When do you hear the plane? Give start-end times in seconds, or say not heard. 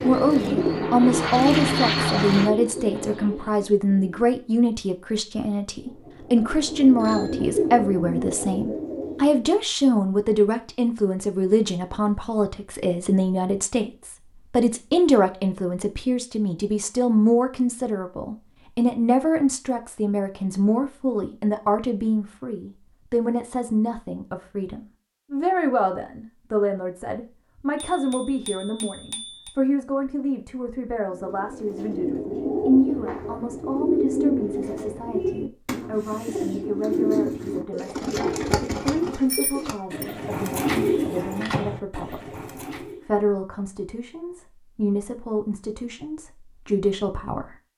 0.0-2.5.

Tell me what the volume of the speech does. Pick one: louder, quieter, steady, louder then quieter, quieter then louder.
quieter.